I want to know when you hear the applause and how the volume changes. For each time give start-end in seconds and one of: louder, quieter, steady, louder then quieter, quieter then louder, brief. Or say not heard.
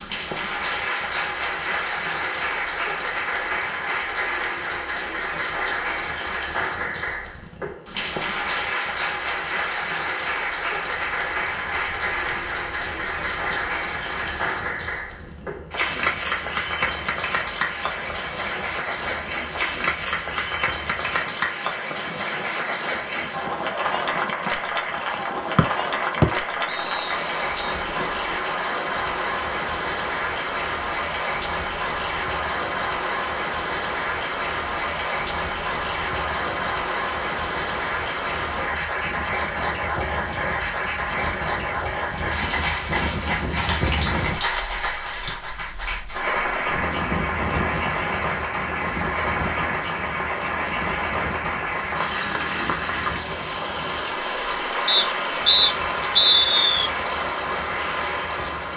0.0-58.7 steady.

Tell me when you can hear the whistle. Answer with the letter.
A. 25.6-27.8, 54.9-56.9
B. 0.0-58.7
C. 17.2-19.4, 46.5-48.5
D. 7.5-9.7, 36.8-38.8
A.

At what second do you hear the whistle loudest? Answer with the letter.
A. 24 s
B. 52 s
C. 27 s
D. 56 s
D.